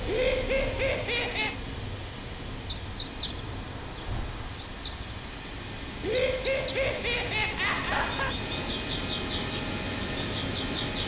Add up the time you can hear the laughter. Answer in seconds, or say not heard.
4 s.